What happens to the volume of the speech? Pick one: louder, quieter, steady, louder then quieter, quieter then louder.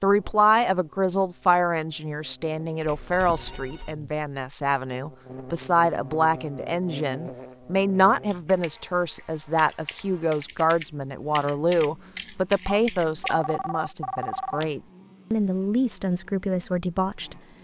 steady.